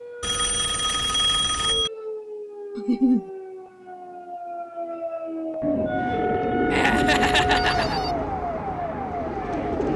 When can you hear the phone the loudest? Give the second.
1 s.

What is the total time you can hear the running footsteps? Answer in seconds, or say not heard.
not heard.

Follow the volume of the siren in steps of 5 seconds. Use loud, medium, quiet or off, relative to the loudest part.
medium, loud.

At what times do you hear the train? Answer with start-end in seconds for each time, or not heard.
6.8-9.9.